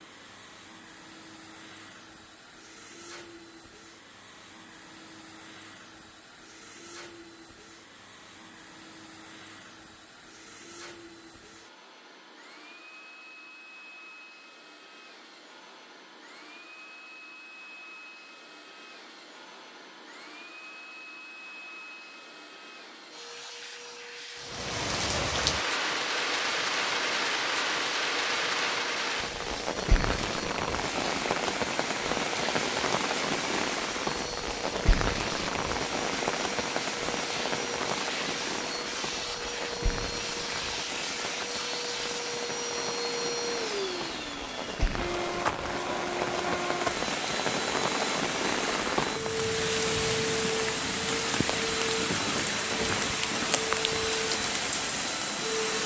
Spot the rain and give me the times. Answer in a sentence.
You can hear the rain from 24.4 to 55.8 s.